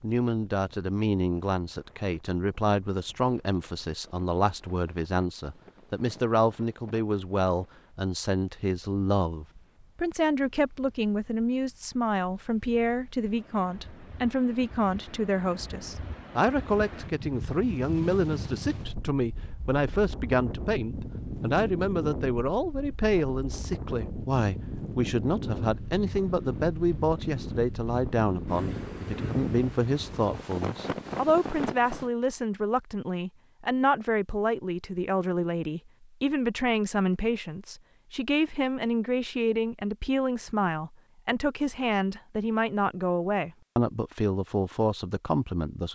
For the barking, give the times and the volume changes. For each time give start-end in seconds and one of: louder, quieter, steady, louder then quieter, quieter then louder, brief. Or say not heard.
not heard.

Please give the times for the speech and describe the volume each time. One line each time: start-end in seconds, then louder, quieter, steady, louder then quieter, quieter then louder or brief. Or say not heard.
0.0-45.9 steady.